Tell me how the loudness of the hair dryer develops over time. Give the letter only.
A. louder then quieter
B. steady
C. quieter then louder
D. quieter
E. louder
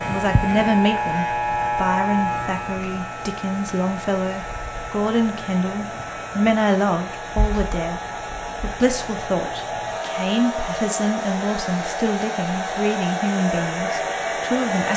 E.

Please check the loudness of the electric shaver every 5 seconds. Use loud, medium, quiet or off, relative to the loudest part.
loud, medium, medium.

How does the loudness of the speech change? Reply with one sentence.
The volume of the speech stays about the same.